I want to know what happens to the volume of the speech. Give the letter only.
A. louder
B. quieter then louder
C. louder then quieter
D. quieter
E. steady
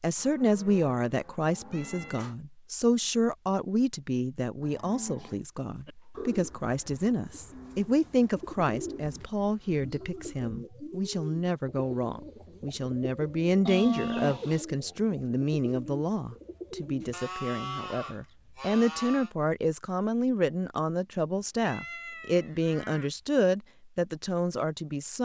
E.